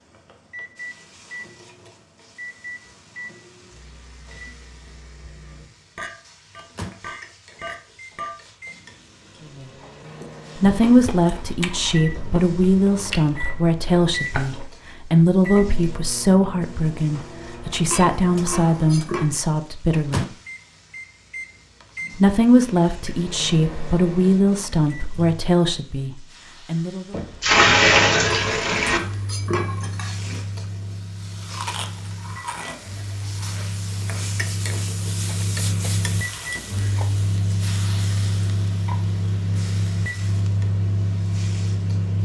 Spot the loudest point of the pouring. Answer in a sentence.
The volume of the pouring peaks at 28 seconds.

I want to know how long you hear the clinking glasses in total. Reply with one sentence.
The clinking glasses can be heard for 6 seconds in total.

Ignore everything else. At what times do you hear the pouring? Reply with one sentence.
The pouring can be heard from 27.1 to 29.0 s.